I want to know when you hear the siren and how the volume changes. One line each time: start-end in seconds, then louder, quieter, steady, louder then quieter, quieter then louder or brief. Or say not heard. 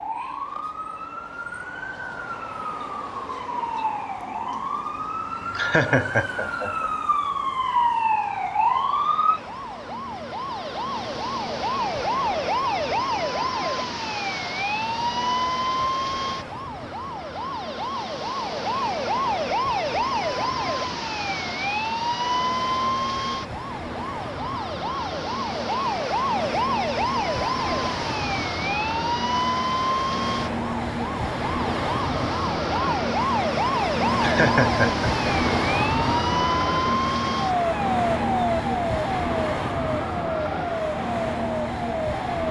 0.0-42.4 steady.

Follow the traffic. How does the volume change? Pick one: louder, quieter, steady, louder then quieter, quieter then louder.
louder.